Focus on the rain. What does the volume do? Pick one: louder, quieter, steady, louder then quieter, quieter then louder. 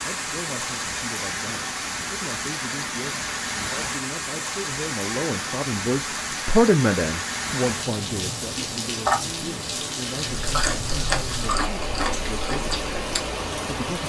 steady.